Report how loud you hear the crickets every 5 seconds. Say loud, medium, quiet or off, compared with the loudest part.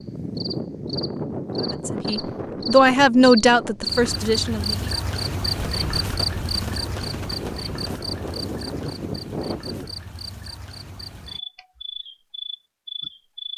loud, loud, medium.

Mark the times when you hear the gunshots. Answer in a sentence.
You can hear the gunshots from 5.8 to 8.3 s.